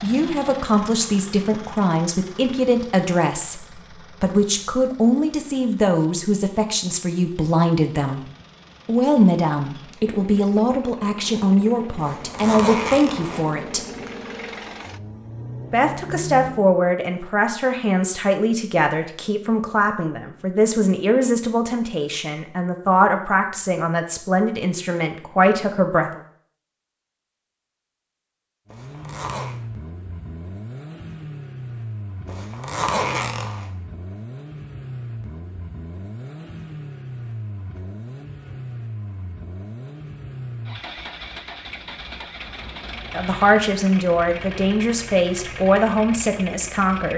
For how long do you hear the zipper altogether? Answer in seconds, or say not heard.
4 s.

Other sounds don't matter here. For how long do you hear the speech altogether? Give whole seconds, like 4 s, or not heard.
28 s.